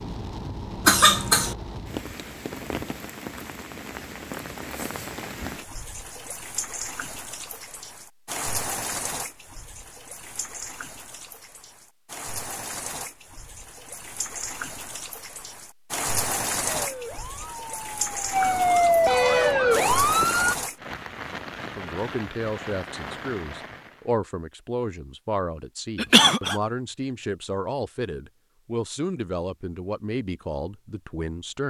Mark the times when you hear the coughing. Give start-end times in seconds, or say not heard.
0.8-1.6, 25.9-26.6.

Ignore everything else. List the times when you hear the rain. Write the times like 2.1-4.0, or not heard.
0.0-24.1.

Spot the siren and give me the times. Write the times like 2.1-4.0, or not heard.
16.8-20.6.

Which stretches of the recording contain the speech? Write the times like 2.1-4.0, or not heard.
21.8-31.6.